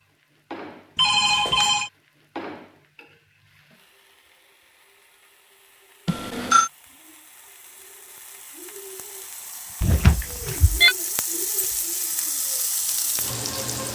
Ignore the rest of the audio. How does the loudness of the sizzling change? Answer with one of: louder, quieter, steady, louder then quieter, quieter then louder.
quieter then louder.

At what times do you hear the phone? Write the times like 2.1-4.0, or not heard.
0.9-1.9, 6.0-6.7, 9.8-10.9.